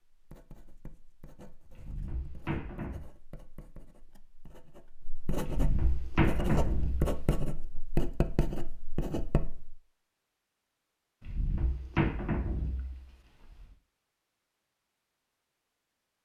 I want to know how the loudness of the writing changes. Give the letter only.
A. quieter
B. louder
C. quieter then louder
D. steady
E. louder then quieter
B.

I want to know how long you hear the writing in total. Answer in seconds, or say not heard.
10 s.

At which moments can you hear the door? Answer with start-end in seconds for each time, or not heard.
1.7-3.0, 5.4-7.2, 11.2-13.7.